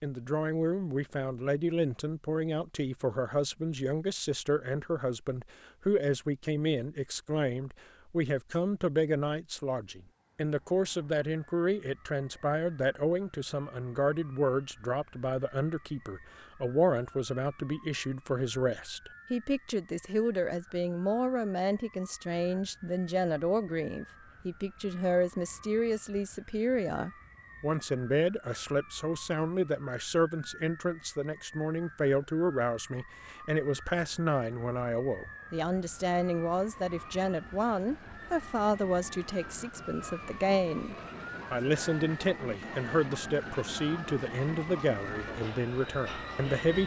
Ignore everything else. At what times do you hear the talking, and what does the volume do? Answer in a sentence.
The talking can be heard from 0.0 to 46.8 s, at a steady volume.